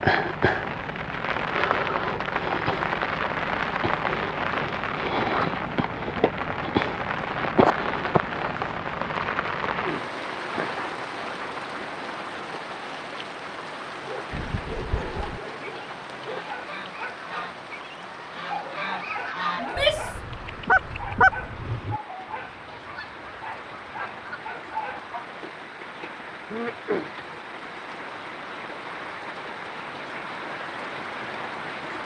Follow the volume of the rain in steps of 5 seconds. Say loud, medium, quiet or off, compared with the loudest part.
loud, loud, medium, quiet, quiet, medium, medium.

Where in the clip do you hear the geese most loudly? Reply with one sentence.
The volume of the geese peaks at 21 seconds.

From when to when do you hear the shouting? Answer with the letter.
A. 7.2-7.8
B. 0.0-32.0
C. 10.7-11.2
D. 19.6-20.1
D.